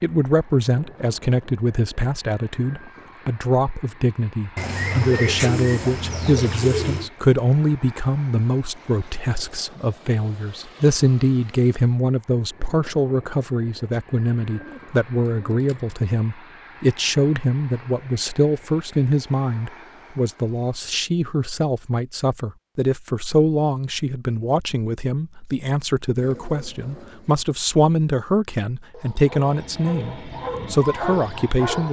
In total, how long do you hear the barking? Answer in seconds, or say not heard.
3 s.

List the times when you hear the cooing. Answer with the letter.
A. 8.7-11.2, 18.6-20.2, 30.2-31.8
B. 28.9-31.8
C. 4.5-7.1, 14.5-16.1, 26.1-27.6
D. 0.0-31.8
C.